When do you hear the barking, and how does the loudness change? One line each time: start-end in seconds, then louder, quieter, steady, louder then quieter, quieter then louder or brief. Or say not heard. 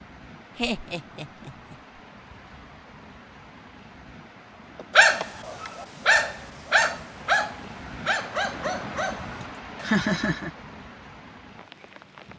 5.0-10.1 quieter.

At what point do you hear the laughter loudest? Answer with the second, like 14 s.
10 s.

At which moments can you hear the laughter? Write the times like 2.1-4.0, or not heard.
0.6-1.8, 4.8-5.7, 9.4-10.5.